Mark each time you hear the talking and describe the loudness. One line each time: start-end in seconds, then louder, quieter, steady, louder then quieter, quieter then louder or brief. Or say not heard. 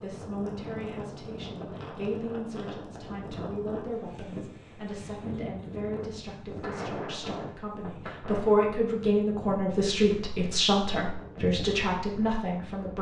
0.0-12.9 louder.